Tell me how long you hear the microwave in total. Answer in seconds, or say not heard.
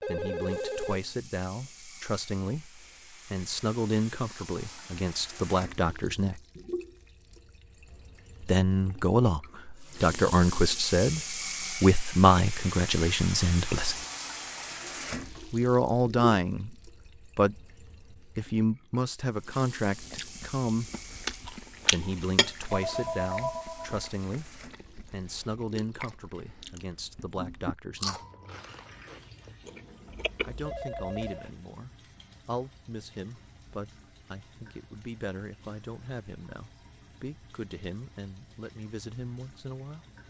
not heard.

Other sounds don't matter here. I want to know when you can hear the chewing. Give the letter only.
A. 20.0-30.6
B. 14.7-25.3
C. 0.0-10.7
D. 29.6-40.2
A.